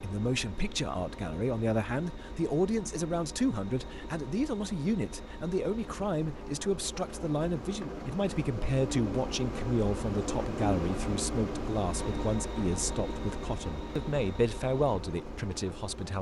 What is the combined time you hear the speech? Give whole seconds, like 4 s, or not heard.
16 s.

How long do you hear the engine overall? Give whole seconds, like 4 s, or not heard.
16 s.